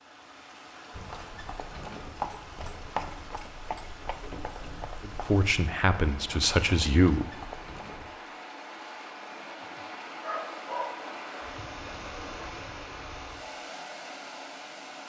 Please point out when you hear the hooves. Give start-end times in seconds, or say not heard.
0.9-8.2.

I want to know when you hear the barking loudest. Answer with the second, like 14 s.
11 s.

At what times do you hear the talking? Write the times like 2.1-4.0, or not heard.
5.0-7.3.